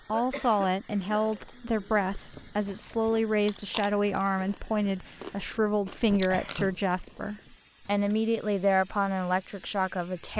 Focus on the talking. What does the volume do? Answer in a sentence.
The loudness of the talking stays about the same.